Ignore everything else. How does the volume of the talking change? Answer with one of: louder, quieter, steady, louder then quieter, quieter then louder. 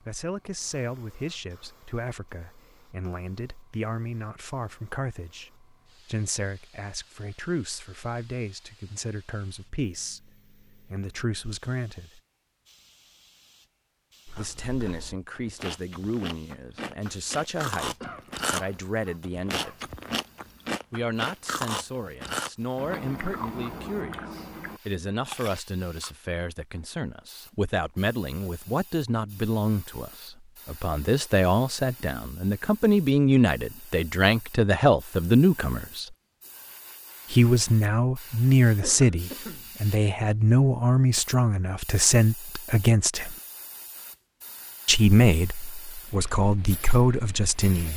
louder.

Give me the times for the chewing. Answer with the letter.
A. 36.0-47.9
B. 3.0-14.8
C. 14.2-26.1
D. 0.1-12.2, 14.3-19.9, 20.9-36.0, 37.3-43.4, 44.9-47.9
C.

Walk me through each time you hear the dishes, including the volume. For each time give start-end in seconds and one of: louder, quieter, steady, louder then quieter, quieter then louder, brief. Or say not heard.
not heard.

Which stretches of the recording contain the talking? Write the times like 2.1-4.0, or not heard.
0.1-12.2, 14.3-19.9, 20.9-36.0, 37.3-43.4, 44.9-47.9.